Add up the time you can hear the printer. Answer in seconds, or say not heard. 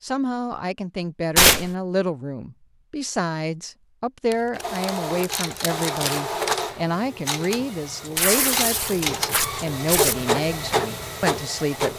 7 s.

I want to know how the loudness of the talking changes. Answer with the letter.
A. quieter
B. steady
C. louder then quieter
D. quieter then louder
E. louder
B.